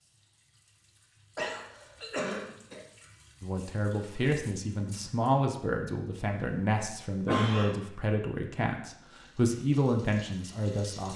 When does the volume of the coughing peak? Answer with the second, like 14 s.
7 s.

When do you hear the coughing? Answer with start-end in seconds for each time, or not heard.
1.4-2.8, 6.3-7.8.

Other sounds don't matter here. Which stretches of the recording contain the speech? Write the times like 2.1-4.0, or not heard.
3.4-11.1.